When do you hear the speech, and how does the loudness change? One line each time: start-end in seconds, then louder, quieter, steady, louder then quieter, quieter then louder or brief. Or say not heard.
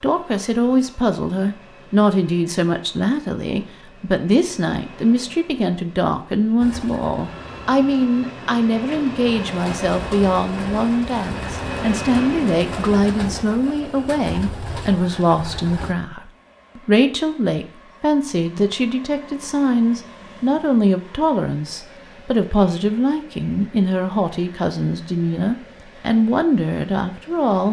0.0-27.6 steady.